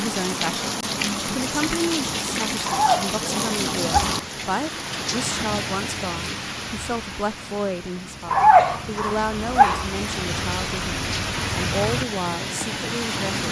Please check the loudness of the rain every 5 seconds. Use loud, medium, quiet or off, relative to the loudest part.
loud, medium, loud.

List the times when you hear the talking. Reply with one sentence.
You can hear the talking from 0.0 to 13.4 s.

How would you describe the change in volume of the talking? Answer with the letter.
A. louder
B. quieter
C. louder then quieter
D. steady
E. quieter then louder
D.